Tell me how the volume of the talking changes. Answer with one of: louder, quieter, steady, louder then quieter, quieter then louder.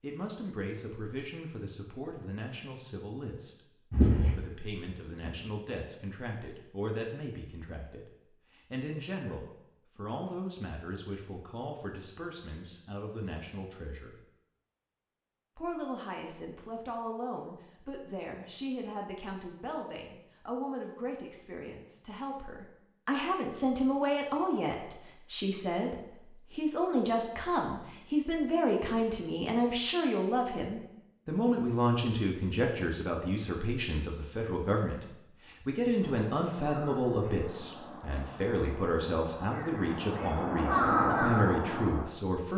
louder.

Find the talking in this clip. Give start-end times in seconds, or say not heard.
0.0-14.2, 15.6-42.5.